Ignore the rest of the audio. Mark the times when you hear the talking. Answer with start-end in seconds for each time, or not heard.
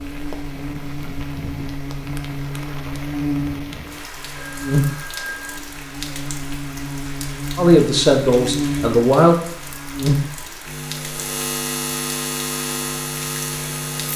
7.5-9.3.